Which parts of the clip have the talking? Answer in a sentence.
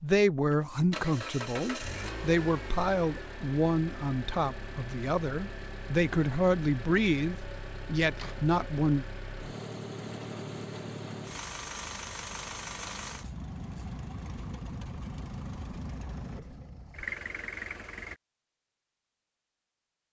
The talking can be heard from 0.0 to 9.1 s.